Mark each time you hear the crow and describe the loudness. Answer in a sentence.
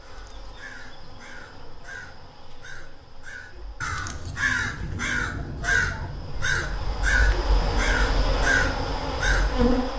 The crow can be heard from 0.0 to 9.7 s, getting louder.